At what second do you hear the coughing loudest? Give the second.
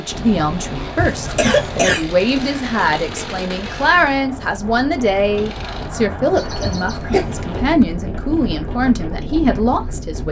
2 s.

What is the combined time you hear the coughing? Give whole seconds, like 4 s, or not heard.
2 s.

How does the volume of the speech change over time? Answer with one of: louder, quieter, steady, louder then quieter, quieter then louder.
steady.